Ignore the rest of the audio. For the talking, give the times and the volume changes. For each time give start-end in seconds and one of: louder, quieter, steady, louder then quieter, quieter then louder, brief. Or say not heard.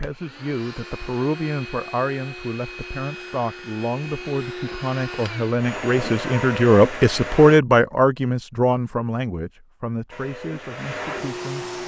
0.0-11.7 louder then quieter.